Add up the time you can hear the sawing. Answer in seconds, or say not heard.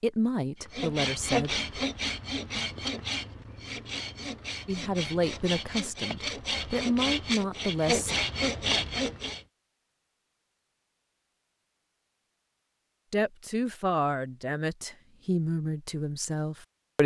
9 s.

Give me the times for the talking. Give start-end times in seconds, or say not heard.
0.0-1.6, 4.7-8.2, 13.1-17.0.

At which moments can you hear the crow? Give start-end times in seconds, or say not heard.
not heard.